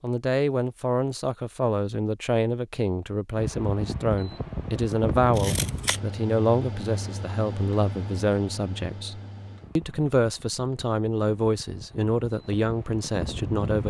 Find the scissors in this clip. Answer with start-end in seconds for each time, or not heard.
5.3-6.0.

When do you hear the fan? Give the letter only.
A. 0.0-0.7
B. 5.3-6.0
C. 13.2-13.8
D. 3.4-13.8
D.